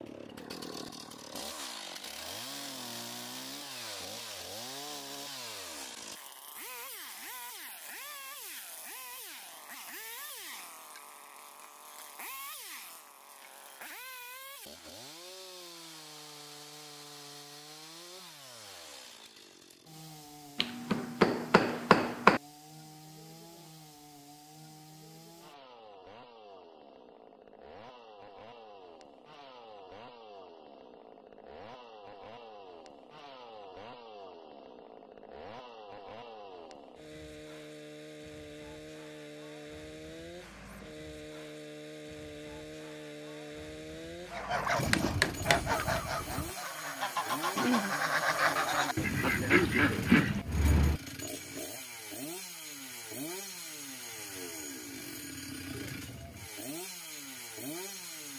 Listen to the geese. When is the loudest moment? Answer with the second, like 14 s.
50 s.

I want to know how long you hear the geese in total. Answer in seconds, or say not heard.
7 s.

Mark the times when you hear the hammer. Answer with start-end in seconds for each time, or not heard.
20.6-22.4, 44.9-46.5.